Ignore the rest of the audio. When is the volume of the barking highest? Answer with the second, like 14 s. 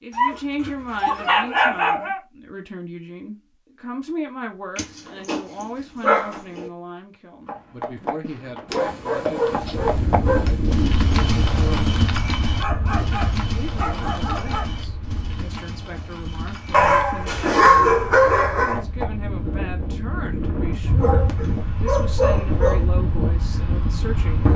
18 s.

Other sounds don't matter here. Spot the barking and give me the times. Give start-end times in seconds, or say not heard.
0.1-2.2, 4.8-6.7, 8.7-10.7, 12.6-14.7, 16.7-18.8, 20.9-22.9.